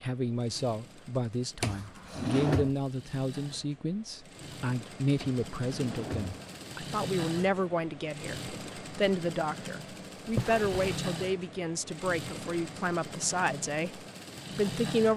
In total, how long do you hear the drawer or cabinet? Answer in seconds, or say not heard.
3 s.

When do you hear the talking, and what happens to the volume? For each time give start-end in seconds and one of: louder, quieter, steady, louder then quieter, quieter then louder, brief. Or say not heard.
0.0-15.1 steady.